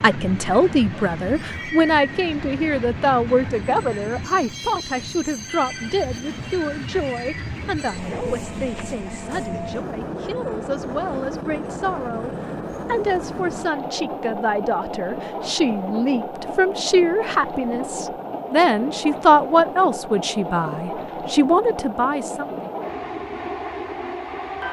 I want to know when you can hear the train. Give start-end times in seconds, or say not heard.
0.0-24.6.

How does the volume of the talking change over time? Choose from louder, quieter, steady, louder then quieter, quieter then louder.
quieter then louder.